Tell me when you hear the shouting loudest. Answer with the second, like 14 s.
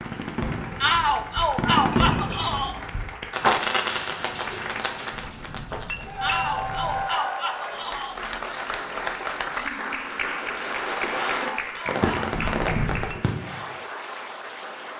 1 s.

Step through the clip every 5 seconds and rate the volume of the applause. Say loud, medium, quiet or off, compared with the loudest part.
medium, loud, loud.